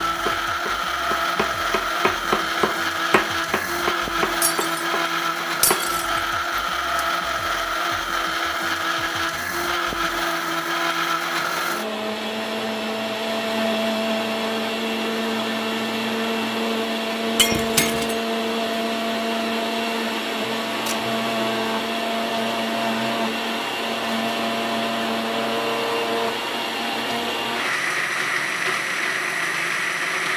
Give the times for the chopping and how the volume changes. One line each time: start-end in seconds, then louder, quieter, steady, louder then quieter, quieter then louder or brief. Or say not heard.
0.0-5.8 louder then quieter.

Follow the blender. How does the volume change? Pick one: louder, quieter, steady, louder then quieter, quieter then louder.
steady.